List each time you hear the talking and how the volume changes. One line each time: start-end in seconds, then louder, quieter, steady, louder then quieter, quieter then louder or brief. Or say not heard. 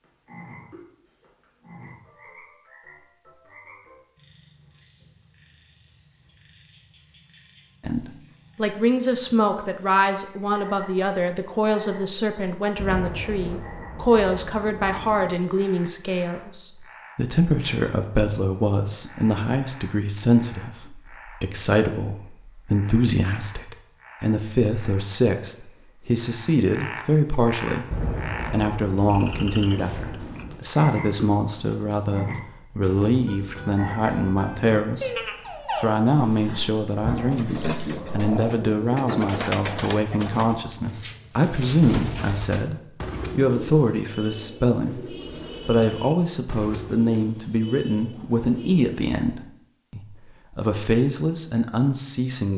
7.8-35.1 steady
35.8-52.5 steady.